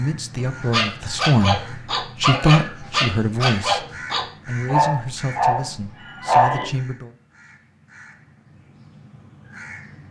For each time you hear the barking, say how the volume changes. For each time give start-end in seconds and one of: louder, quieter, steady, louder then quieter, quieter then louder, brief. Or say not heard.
0.3-6.7 steady.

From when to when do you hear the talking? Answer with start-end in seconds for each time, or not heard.
0.0-7.1.